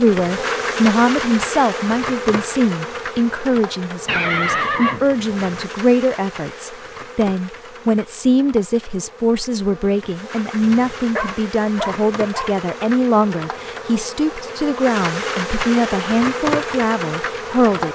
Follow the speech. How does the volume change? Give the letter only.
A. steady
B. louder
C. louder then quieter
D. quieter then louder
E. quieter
A.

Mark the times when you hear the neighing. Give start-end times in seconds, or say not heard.
4.0-5.7.